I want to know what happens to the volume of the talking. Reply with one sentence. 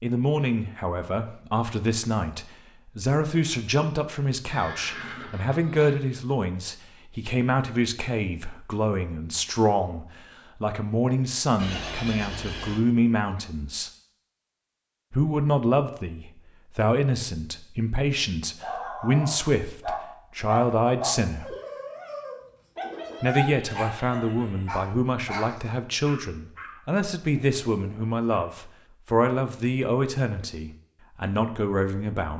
The loudness of the talking stays about the same.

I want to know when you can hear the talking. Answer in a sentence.
You can hear the talking from 0.0 to 13.9 s, from 15.1 to 21.6 s and from 23.2 to 32.3 s.